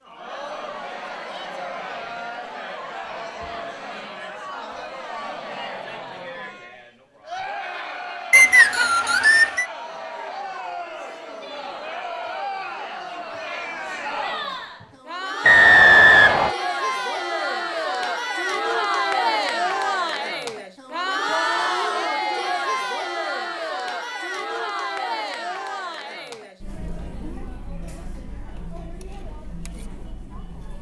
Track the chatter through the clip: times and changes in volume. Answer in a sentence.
You can hear the chatter from 0.0 to 30.7 s, getting louder then quieter.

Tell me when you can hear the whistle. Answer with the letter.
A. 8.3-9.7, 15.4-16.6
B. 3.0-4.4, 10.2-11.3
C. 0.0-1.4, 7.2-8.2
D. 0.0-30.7
A.